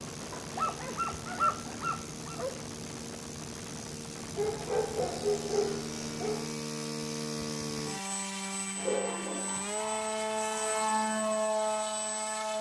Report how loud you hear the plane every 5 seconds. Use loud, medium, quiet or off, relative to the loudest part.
medium, medium, loud.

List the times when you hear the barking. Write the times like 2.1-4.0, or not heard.
0.3-2.5, 4.3-6.5, 8.8-10.6.